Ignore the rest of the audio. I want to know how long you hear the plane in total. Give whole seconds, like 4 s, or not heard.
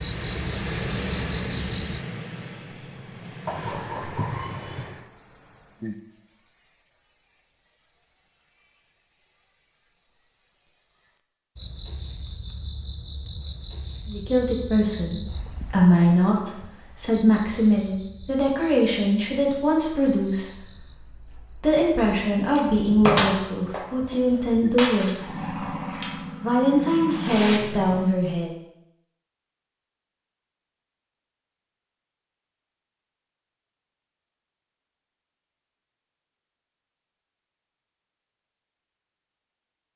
7 s.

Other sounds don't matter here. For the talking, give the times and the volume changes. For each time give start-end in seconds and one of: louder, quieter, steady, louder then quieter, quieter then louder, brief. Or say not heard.
14.1-25.5 steady
26.4-28.5 brief.